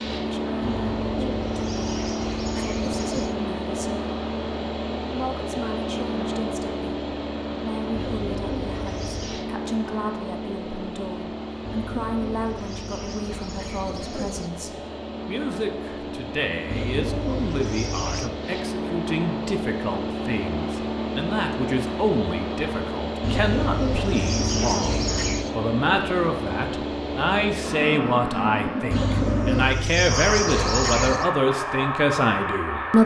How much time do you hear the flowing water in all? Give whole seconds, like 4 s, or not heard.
not heard.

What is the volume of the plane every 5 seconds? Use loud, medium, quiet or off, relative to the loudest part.
loud, loud, medium, loud, loud, loud, loud.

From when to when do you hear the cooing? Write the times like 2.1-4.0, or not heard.
0.6-3.4, 7.9-9.4, 11.7-14.5, 16.7-18.3, 23.2-25.6, 28.9-31.3.